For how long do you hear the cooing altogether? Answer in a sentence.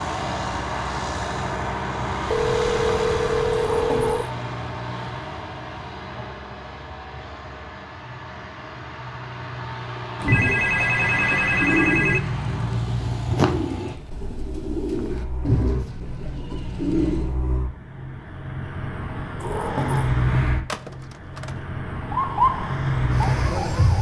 The cooing can be heard for 7 seconds in total.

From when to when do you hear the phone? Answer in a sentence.
The phone can be heard from 2.2 to 4.2 s, from 10.2 to 12.2 s and from 20.6 to 21.6 s.